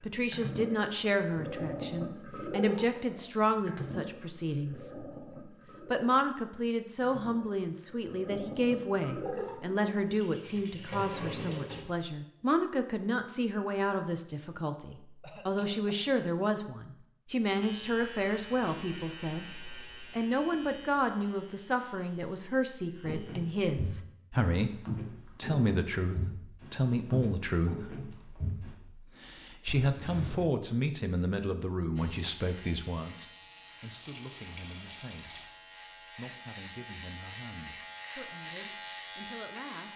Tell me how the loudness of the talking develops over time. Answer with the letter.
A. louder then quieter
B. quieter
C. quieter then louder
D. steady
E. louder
B.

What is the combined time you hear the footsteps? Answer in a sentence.
The footsteps can be heard for 6 seconds in total.